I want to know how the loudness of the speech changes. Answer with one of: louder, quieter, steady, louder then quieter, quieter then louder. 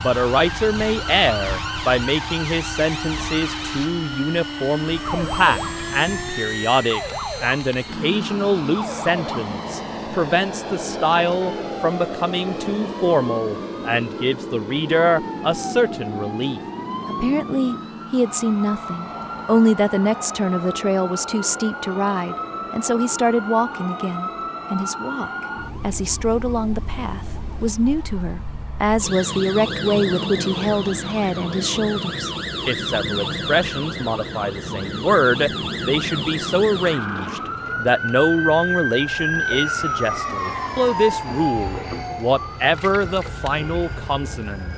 steady.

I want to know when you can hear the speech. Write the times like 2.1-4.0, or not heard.
0.0-44.7.